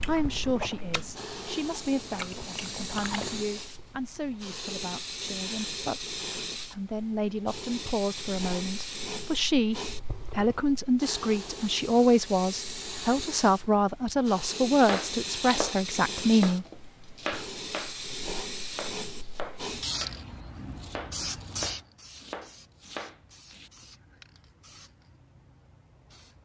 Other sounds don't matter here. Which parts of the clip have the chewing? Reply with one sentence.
The chewing can be heard from 0.0 to 3.5 s.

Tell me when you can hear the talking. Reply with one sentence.
You can hear the talking from 0.1 to 9.8 s and from 10.3 to 16.6 s.